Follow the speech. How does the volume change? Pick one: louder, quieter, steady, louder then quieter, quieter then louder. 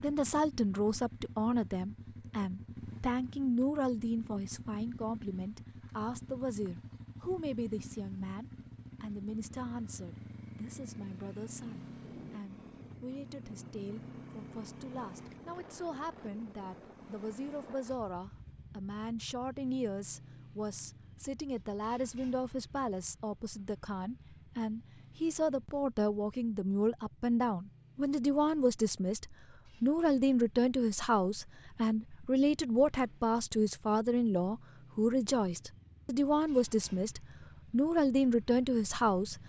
quieter then louder.